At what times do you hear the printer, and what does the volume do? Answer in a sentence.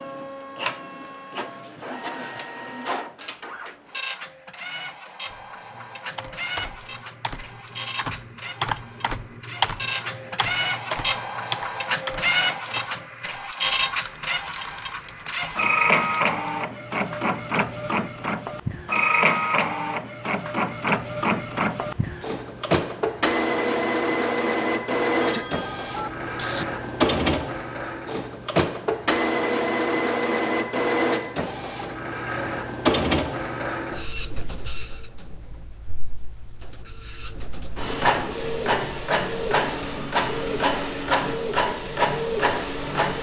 The printer can be heard from 0.0 to 43.1 s, getting louder.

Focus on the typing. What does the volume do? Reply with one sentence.
The loudness of the typing goes up, then down.